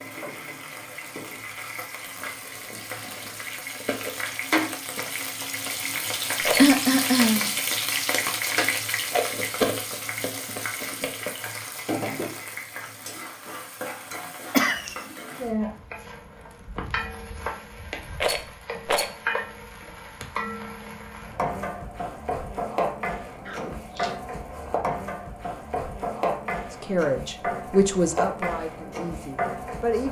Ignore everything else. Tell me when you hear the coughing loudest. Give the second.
7 s.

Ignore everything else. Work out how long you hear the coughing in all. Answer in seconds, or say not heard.
2 s.